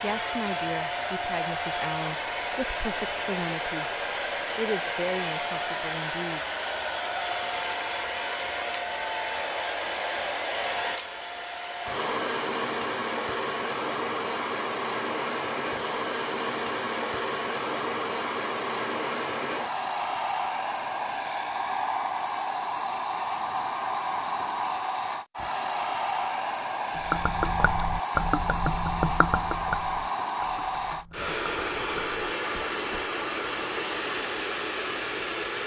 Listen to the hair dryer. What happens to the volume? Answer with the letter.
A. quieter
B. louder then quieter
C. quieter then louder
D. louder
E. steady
E.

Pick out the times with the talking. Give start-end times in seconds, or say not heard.
0.0-3.9, 4.5-6.4.